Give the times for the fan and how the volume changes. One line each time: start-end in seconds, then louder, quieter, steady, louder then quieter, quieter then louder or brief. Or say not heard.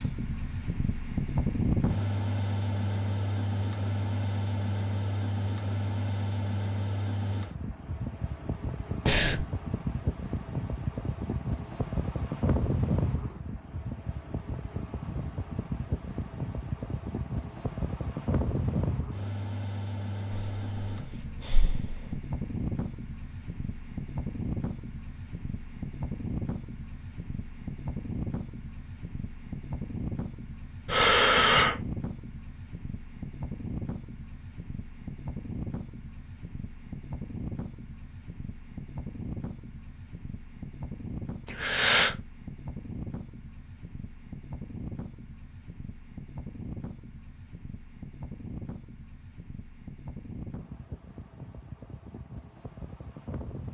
0.0-53.6 quieter.